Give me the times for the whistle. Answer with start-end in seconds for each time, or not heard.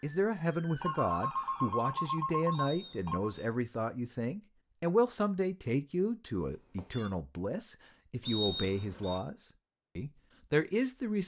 2.5-3.2, 8.2-9.2.